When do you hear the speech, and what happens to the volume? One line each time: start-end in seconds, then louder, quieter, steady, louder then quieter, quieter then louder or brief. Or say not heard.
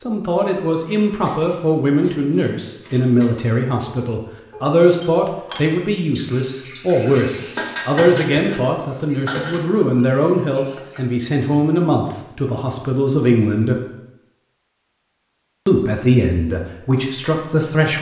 0.0-13.8 steady
15.7-17.9 brief.